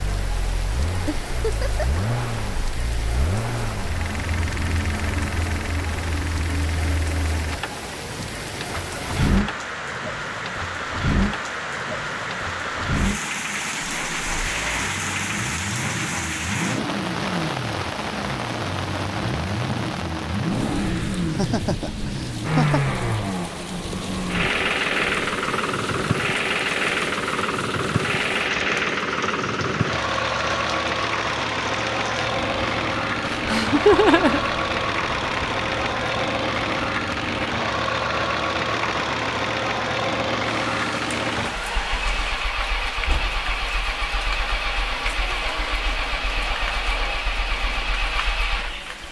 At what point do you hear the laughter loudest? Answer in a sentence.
The loudest moment of the laughter is at 34 seconds.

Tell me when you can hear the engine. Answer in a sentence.
You can hear the engine from 0.0 to 49.0 s.